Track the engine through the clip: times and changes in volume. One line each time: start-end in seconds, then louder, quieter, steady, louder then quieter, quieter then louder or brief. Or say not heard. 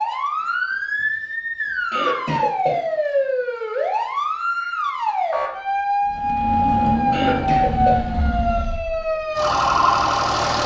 6.0-10.6 quieter then louder.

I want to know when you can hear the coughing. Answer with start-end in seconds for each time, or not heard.
1.9-3.0, 7.1-8.8.